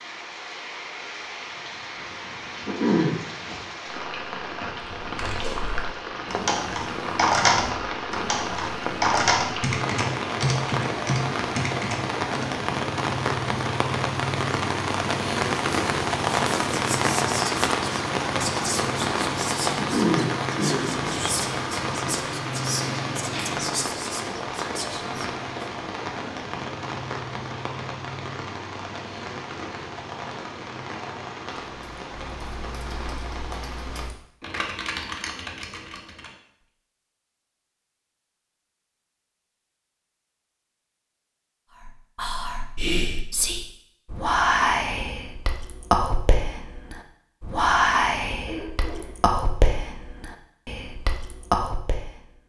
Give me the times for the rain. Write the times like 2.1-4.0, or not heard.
0.0-34.1.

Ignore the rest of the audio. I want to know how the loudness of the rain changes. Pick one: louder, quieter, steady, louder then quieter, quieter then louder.
louder then quieter.